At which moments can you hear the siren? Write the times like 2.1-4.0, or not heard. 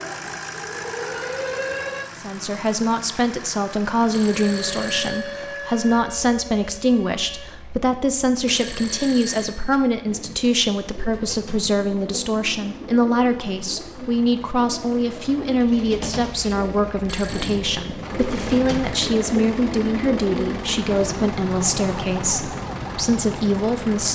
0.0-2.1, 4.5-7.5, 20.9-24.1.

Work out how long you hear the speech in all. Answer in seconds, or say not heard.
22 s.